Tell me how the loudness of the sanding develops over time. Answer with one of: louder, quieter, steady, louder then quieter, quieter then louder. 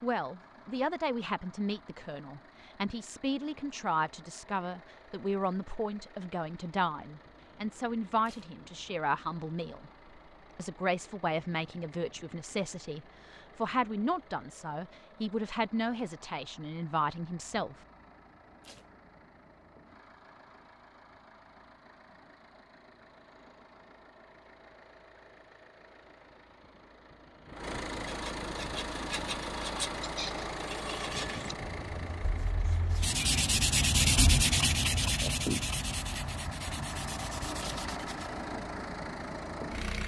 louder then quieter.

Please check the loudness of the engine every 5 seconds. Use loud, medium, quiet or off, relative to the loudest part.
quiet, quiet, quiet, quiet, quiet, loud, loud, loud.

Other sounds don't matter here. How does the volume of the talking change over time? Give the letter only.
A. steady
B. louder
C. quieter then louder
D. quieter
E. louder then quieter
A.